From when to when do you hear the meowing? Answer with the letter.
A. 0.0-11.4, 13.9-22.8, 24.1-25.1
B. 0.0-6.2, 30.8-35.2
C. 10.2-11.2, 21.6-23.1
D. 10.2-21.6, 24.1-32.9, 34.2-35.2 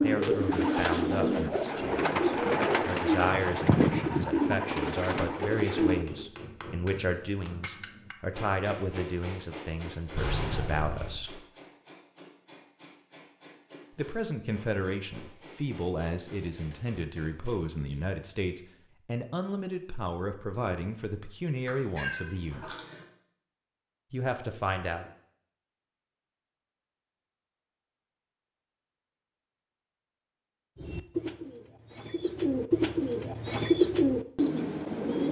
C.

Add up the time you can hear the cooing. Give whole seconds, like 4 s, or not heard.
11 s.